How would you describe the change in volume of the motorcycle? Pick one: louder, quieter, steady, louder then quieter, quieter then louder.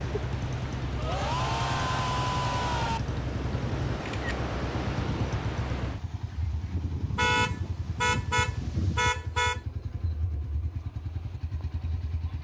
quieter.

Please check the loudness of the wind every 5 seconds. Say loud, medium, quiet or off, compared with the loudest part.
loud, loud, off.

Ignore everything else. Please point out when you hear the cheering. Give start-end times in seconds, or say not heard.
0.9-3.0.